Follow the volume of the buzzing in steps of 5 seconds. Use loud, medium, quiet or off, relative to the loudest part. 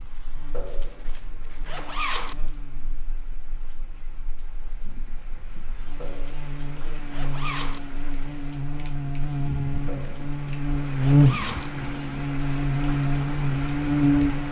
quiet, medium, loud.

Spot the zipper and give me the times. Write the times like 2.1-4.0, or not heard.
0.5-2.4, 6.0-7.8, 9.8-11.7.